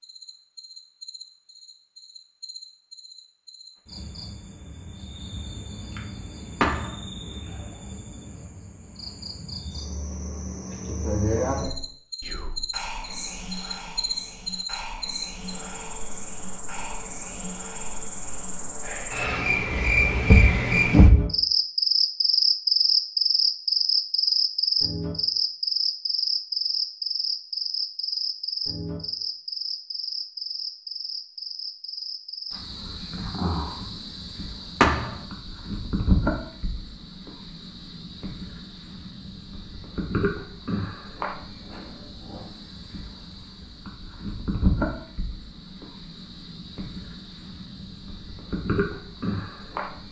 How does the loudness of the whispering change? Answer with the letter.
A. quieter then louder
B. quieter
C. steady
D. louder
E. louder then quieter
B.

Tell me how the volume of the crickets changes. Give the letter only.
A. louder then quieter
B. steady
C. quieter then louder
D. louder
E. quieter
A.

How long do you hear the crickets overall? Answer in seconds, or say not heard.
50 s.